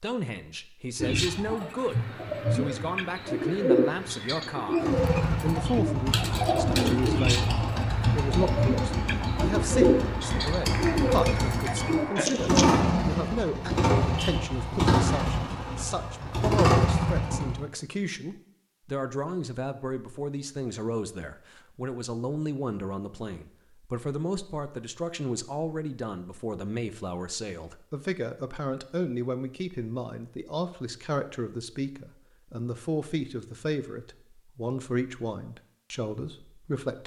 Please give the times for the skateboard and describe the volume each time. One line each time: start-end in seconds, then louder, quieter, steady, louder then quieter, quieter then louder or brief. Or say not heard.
not heard.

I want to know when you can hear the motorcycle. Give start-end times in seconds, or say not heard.
4.8-17.6.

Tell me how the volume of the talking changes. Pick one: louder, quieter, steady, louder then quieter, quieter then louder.
steady.